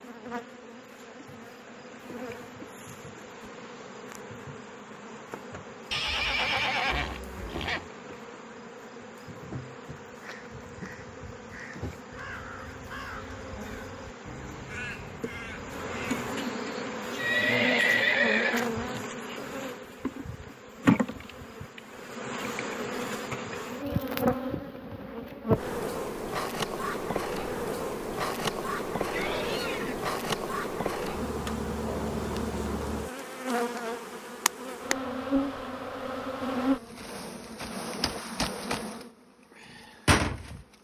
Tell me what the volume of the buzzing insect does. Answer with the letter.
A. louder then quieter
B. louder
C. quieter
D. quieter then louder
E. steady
B.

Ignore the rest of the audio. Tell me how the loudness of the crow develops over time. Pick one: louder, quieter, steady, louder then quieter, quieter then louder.
louder.